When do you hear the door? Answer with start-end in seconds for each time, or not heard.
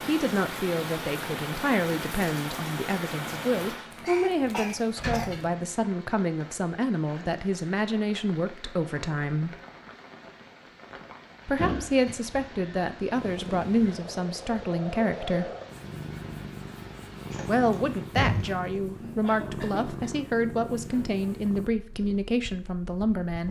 5.0-5.5, 11.6-12.6, 17.3-18.7.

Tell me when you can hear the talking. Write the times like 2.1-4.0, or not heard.
0.0-9.6, 11.4-15.5, 17.4-23.4.